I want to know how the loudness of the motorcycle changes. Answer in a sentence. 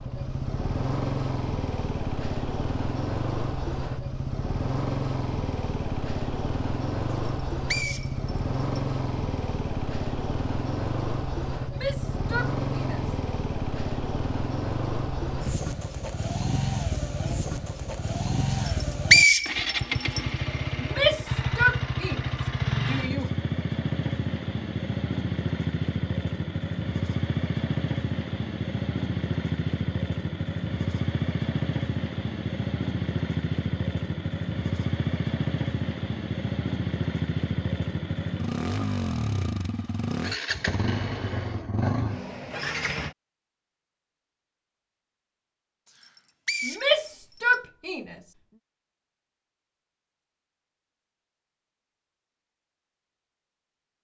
The loudness of the motorcycle stays about the same.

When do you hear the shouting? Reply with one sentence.
The shouting can be heard from 11.7 to 13.0 s, from 20.8 to 23.3 s and from 46.6 to 48.1 s.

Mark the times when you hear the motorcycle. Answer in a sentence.
The motorcycle can be heard from 0.0 to 43.1 s.